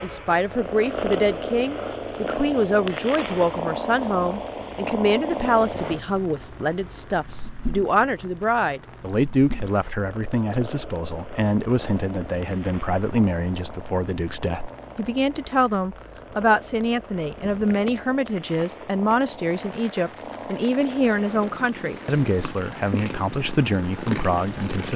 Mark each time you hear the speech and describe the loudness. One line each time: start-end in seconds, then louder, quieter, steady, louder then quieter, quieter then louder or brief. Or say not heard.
0.0-24.9 steady.